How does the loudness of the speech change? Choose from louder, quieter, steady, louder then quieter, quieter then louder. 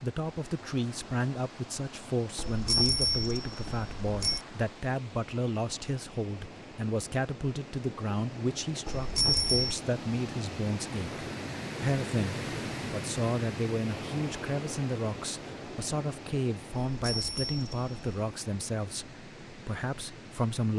steady.